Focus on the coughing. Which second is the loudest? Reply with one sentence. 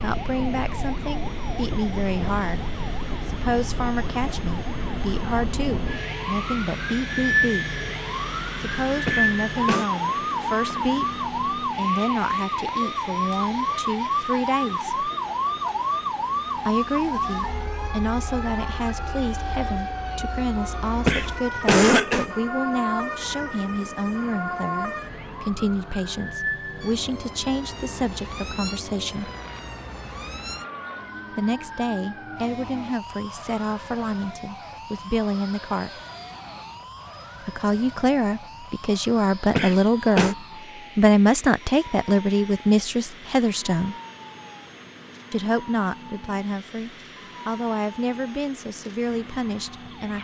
The volume of the coughing peaks at 22 seconds.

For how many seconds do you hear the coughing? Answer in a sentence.
You can hear the coughing for 3 seconds altogether.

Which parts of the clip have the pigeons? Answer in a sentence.
The pigeons can't be heard in this clip.